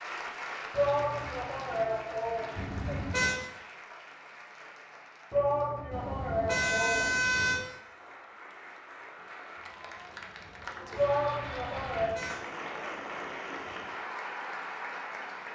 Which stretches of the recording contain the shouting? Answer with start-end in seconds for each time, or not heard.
0.7-3.0, 5.3-7.2, 10.9-12.2.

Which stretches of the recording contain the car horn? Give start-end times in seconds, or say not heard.
2.5-3.4, 5.9-7.7, 11.6-12.4.